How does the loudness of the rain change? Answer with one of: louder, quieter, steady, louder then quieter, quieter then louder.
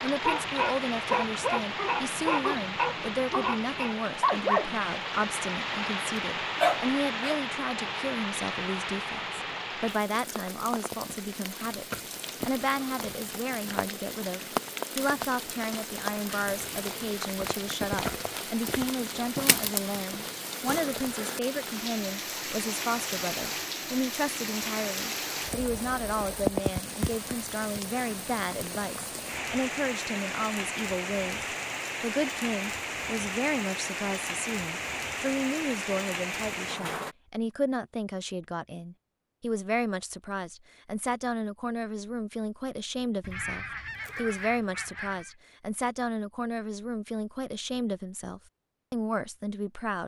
steady.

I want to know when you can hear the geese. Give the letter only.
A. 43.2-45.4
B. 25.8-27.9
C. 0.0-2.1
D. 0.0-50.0
A.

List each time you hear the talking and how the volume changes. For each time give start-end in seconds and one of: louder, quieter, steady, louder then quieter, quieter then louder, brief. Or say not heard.
0.0-50.0 steady.